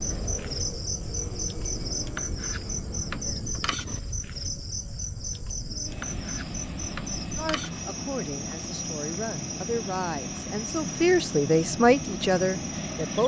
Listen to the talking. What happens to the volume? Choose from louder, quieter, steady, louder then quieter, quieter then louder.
louder.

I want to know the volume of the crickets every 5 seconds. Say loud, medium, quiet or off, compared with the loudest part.
loud, loud, medium.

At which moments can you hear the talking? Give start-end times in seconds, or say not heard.
7.3-13.2.